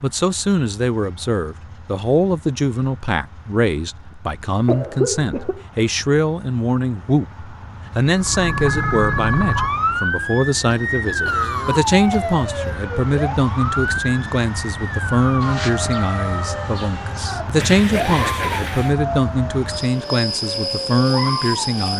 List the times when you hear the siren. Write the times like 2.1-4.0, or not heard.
8.2-21.8.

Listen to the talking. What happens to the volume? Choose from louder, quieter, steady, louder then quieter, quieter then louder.
steady.